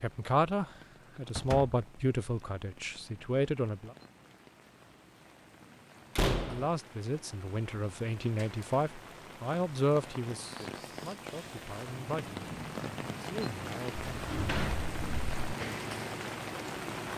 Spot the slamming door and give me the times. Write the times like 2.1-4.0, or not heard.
1.4-1.8, 6.2-6.7, 14.2-15.6.